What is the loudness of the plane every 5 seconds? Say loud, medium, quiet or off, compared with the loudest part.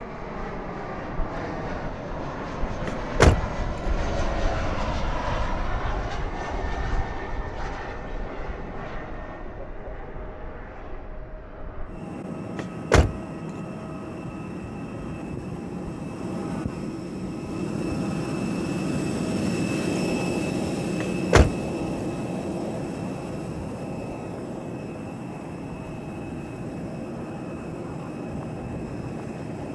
loud, medium, medium, loud, loud, medium.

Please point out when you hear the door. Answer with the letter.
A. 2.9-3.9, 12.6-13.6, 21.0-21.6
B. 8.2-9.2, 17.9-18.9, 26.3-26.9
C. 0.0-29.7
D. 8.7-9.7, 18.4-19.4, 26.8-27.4
A.